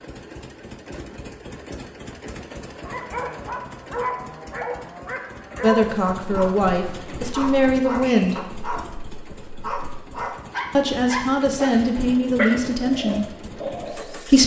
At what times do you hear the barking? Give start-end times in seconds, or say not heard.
2.6-14.2.